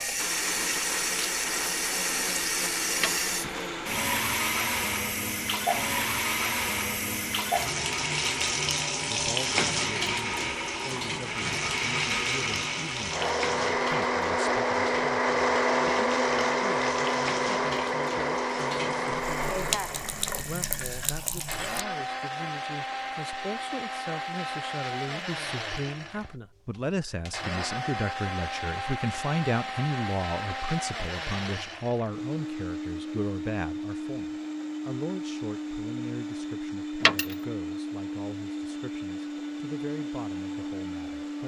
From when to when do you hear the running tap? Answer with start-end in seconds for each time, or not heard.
0.0-21.9.